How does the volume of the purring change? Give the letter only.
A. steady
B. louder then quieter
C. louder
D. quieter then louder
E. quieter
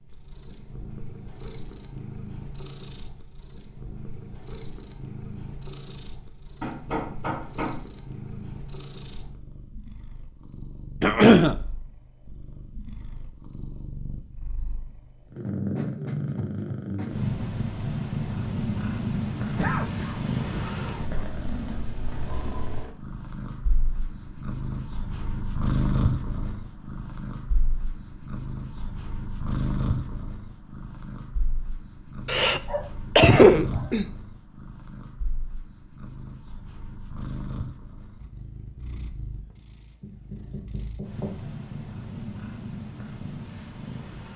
B.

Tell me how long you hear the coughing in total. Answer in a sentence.
The coughing can be heard for 4 seconds in total.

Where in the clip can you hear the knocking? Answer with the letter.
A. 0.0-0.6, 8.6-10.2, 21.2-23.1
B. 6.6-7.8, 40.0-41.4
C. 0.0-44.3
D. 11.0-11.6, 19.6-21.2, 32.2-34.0
B.